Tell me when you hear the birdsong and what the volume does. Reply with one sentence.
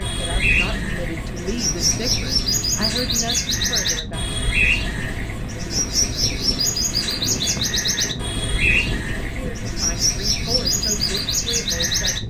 You can hear the birdsong from 0.0 to 12.2 s, at a steady volume.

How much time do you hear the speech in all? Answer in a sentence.
You can hear the speech for 7 seconds altogether.